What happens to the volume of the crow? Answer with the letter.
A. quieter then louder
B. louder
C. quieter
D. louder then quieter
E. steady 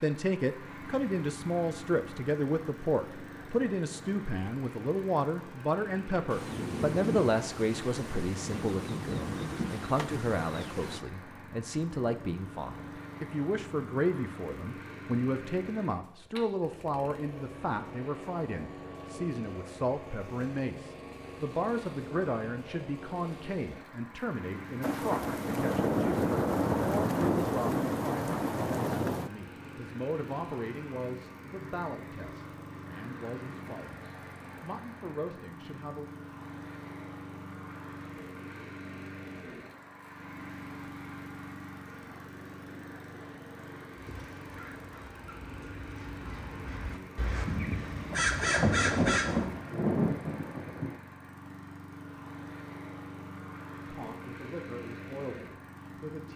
B.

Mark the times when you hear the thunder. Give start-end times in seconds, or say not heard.
6.3-11.0, 24.8-29.3, 47.5-51.0.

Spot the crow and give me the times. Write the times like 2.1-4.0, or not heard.
44.0-49.6.